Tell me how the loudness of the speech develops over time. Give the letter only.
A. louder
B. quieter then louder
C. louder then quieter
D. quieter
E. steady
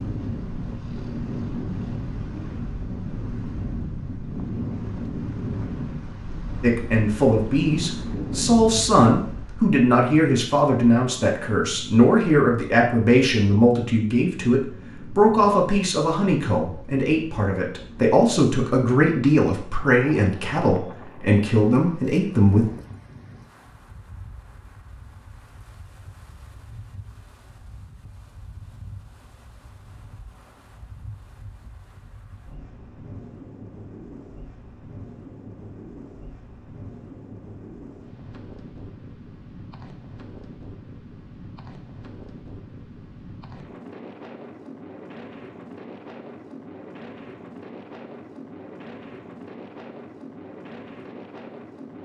E.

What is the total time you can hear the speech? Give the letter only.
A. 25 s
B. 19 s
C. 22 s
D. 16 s
D.